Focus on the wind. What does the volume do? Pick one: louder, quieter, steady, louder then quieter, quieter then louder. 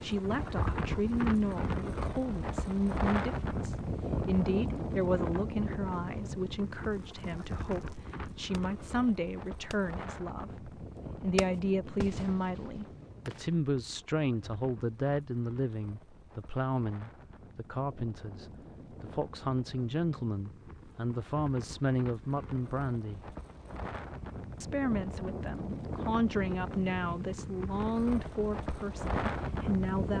quieter then louder.